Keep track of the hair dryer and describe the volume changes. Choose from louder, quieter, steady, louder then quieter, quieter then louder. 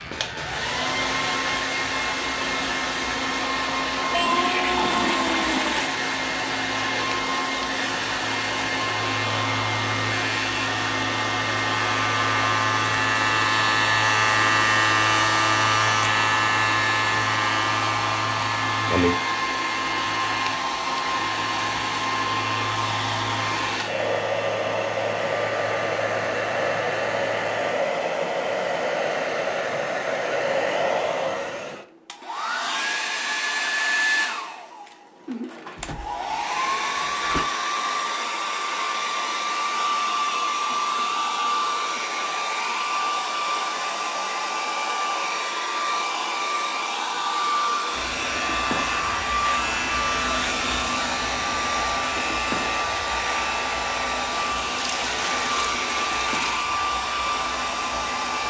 steady.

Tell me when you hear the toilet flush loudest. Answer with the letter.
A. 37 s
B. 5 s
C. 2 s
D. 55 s
B.